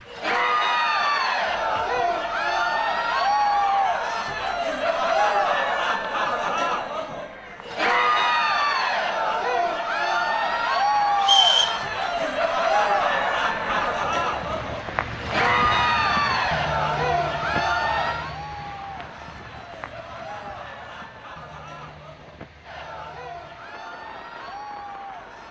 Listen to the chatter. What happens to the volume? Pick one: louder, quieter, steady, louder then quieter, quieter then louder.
quieter.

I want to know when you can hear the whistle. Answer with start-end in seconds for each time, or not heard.
11.2-12.2.